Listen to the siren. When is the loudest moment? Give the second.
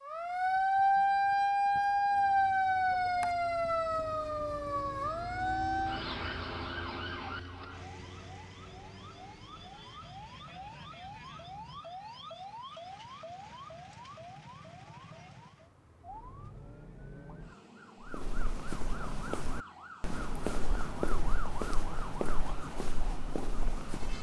1 s.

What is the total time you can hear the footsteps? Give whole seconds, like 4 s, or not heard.
6 s.